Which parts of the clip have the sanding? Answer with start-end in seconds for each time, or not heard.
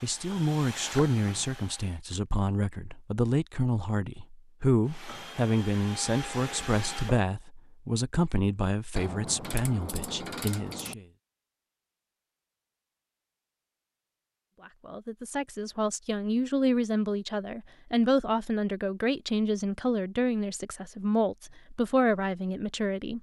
not heard.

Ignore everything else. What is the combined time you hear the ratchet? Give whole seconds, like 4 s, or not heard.
2 s.